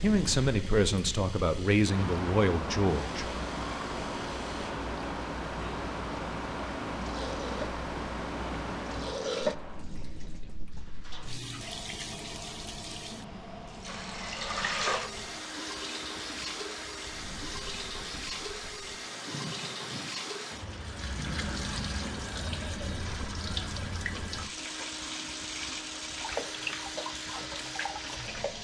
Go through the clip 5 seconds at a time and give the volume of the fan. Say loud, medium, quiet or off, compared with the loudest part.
loud, loud, medium, medium, medium, medium.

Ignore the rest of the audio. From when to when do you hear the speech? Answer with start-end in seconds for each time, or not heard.
0.0-3.4.